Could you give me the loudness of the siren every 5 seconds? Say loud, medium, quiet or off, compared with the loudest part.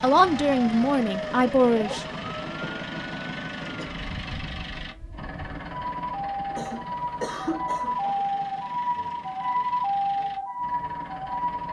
medium, loud, loud.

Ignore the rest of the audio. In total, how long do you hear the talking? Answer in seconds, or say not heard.
2 s.